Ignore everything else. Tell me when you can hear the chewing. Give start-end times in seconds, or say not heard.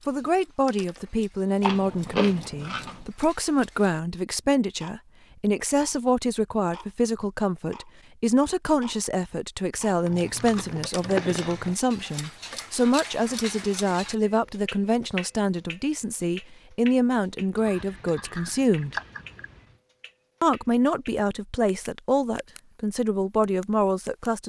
1.6-3.0, 10.1-11.8, 17.6-19.6.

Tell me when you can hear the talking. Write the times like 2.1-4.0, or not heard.
0.1-18.9, 20.4-24.4.